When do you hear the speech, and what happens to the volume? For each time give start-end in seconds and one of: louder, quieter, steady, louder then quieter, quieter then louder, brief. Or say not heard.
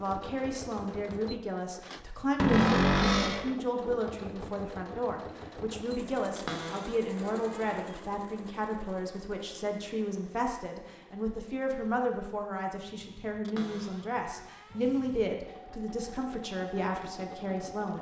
0.0-17.9 steady.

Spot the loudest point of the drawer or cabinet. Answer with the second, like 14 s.
3 s.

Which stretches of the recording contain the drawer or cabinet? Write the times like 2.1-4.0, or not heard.
2.4-3.5, 6.3-8.0, 13.4-14.8.